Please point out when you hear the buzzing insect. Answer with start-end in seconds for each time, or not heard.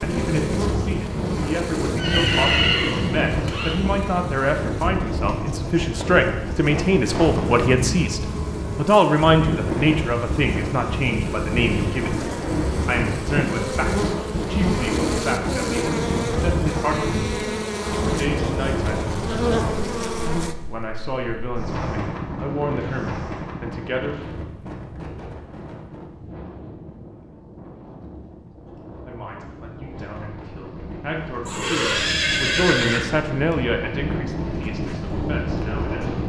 0.0-20.6.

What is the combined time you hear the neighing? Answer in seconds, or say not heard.
3 s.